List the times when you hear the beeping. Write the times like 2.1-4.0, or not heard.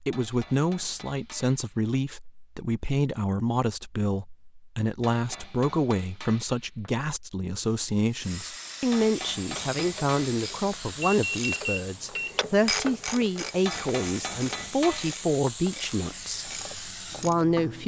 11.0-12.4.